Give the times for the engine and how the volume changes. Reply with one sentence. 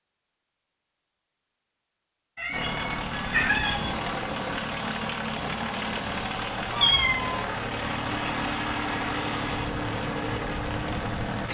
The engine can be heard from 2.5 to 11.4 s, at a steady volume.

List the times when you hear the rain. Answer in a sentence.
You can hear the rain from 2.9 to 11.4 s.